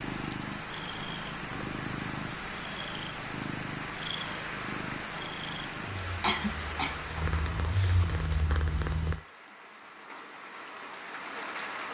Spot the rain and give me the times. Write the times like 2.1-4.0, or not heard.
0.0-11.8.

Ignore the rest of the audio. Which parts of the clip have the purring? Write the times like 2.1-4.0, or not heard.
0.0-9.2.